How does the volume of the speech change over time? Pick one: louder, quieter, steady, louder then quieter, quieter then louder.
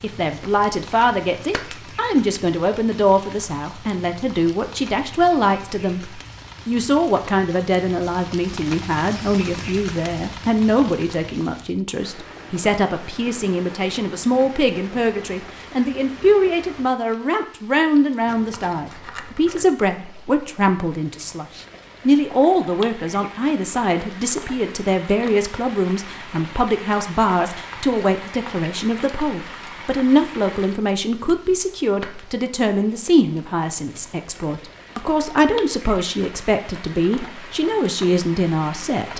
steady.